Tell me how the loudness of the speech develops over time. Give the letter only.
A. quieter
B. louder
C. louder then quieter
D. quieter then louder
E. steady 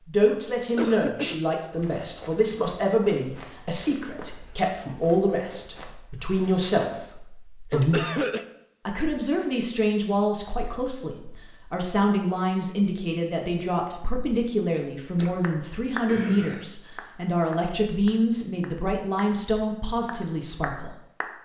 E.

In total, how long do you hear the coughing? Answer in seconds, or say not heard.
2 s.